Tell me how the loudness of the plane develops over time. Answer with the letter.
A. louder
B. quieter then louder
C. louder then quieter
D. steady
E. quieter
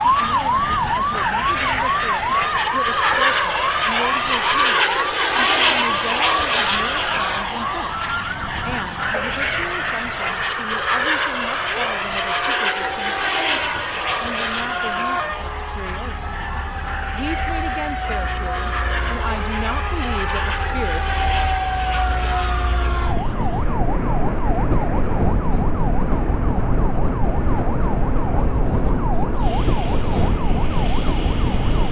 E.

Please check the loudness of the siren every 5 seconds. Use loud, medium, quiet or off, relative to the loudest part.
loud, medium, medium, medium, loud, loud, loud.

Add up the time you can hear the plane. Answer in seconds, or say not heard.
32 s.